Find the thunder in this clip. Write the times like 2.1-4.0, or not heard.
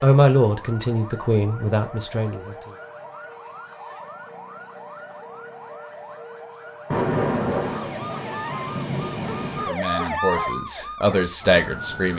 6.9-9.8.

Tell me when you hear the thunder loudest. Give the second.
7 s.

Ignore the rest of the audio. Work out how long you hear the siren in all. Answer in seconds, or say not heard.
12 s.